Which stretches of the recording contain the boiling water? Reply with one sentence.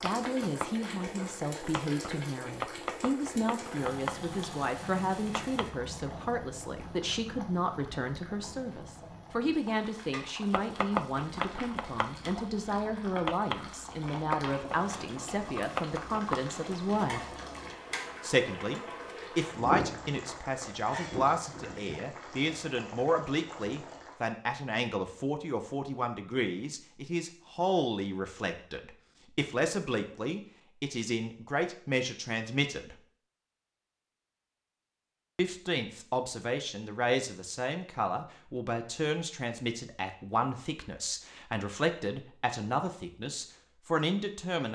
You can hear the boiling water from 0.0 to 24.2 s.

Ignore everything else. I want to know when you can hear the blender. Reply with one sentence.
You can't hear the blender here.